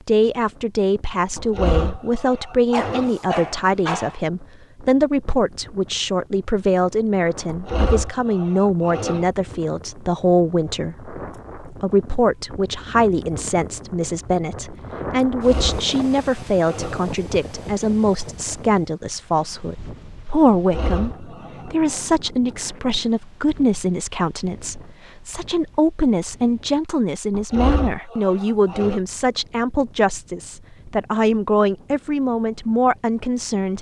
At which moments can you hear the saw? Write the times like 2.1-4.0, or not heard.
1.4-3.1, 7.5-9.2, 15.3-17.1, 20.5-22.0, 27.3-29.0.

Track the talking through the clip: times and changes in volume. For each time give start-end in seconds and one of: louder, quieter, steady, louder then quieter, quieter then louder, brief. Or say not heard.
0.1-33.7 steady.